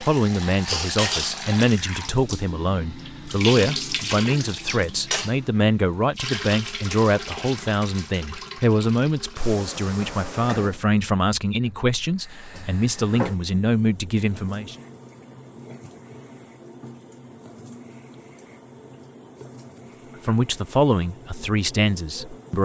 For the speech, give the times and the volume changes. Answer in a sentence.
You can hear the speech from 0.0 to 14.8 s, at a steady volume; and briefly from 20.2 to 22.5 s.